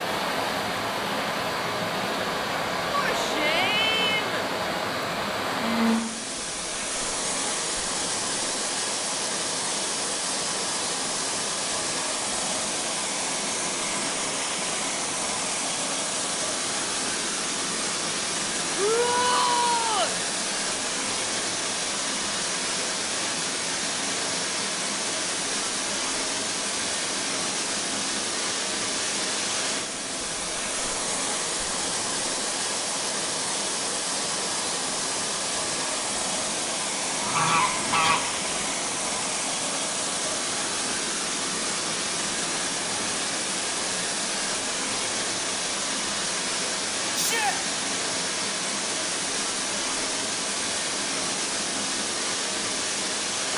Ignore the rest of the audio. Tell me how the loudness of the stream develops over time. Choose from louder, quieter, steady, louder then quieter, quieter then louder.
steady.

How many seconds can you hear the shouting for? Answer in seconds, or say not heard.
3 s.